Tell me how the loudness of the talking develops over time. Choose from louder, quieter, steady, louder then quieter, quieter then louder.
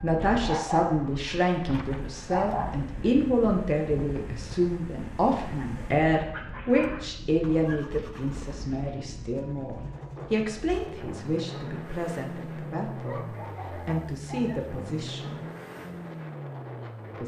quieter.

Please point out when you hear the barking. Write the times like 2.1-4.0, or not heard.
0.5-1.0, 1.8-2.9, 6.2-8.0, 13.0-14.7.